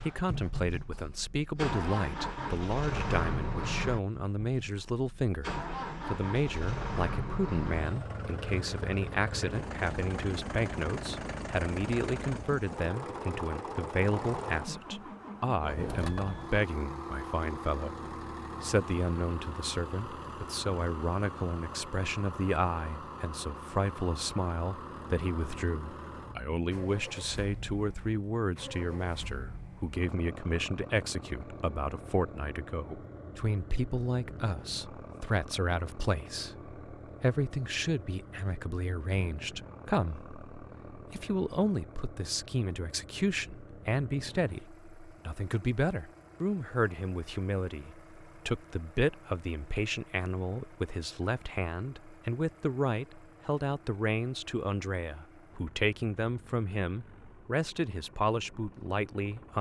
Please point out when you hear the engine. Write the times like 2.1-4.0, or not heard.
0.0-59.5.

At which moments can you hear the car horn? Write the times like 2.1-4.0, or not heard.
not heard.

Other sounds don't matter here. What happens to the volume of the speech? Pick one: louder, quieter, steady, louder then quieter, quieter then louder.
steady.